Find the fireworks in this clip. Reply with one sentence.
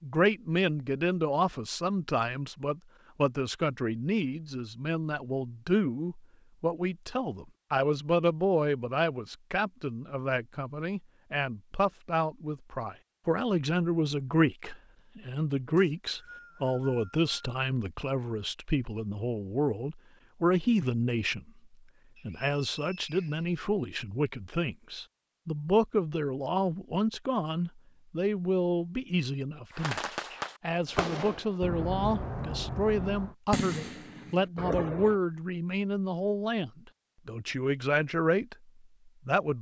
The fireworks can be heard from 29.7 to 35.2 s.